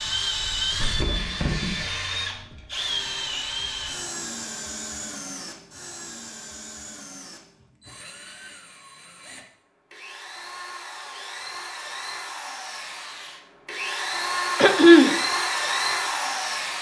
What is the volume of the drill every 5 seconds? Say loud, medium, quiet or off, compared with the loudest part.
loud, quiet, medium, loud.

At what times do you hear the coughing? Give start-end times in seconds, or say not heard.
14.6-15.2.